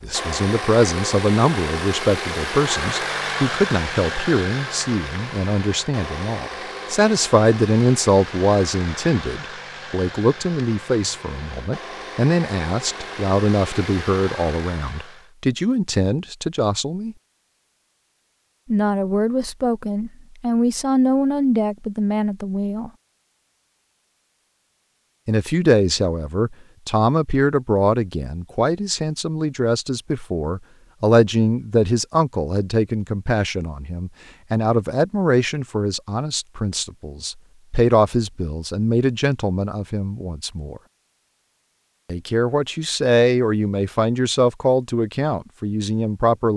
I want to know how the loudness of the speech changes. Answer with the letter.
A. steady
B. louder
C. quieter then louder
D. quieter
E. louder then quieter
A.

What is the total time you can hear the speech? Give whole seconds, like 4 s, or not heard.
41 s.